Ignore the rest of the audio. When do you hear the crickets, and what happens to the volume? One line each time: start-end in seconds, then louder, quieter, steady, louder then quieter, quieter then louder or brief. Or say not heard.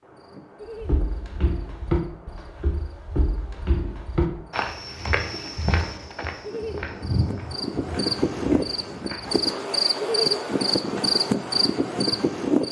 0.0-12.6 louder.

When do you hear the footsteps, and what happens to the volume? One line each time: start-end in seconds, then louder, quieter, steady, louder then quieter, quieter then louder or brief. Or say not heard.
0.8-9.4 quieter.